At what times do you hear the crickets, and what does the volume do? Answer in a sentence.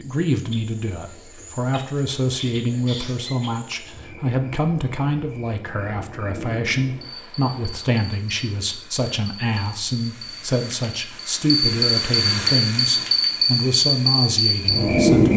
The crickets can be heard from 0.0 to 15.3 s, getting louder.